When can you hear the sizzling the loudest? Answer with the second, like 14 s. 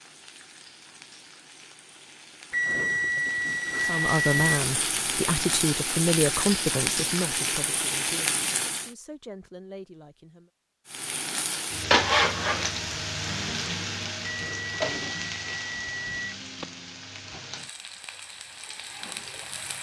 12 s.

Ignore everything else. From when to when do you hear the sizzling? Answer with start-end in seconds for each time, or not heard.
0.0-8.9, 10.8-19.7.